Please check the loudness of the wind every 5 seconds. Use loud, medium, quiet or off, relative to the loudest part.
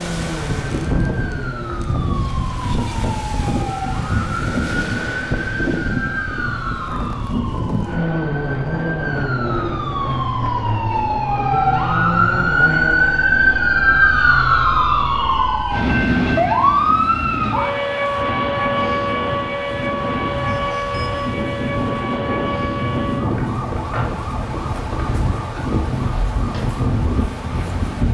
loud, loud, medium, medium, loud, loud.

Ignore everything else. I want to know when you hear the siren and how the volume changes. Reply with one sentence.
The siren can be heard from 0.0 to 28.0 s, getting louder then quieter.